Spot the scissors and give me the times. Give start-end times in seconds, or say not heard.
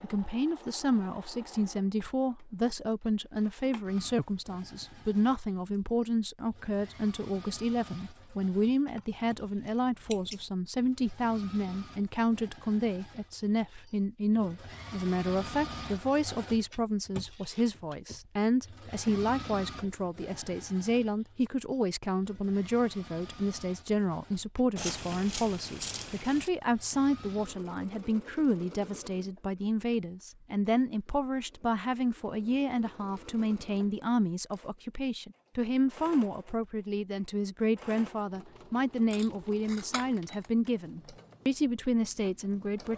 8.9-10.4, 24.8-26.5, 39.1-40.5.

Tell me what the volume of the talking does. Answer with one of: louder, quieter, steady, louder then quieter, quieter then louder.
steady.